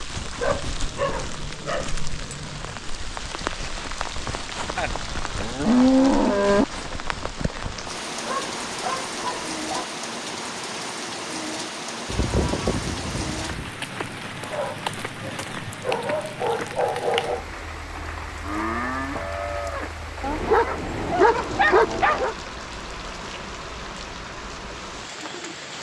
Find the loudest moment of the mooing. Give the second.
6 s.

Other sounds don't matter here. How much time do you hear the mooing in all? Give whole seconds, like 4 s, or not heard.
5 s.